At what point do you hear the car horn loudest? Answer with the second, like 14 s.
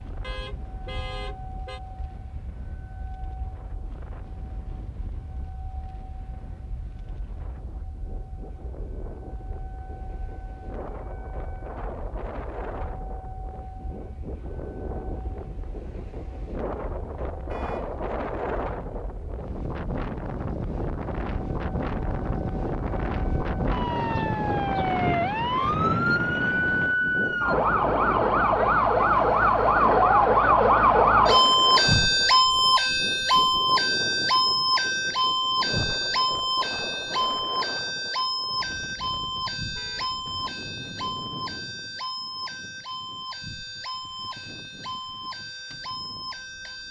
1 s.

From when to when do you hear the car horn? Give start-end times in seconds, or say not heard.
0.2-1.8, 17.4-17.9, 39.8-40.2.